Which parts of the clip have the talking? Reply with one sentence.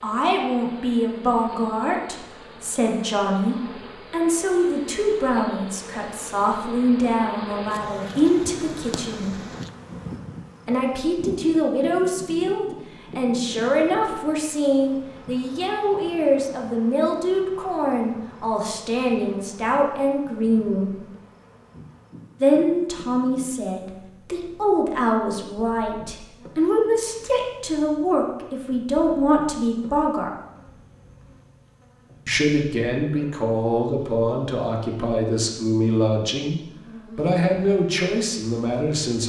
The talking can be heard from 0.0 to 9.3 s, from 10.7 to 20.9 s, from 22.4 to 30.3 s, from 32.2 to 36.5 s and from 37.1 to 39.2 s.